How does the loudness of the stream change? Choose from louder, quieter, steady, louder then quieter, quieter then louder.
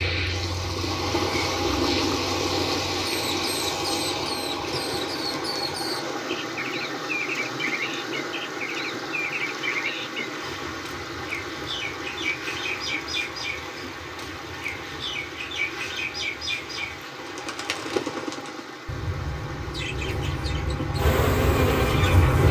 quieter.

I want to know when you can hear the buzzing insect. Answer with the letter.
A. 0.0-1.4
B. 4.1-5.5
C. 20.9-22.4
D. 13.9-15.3
C.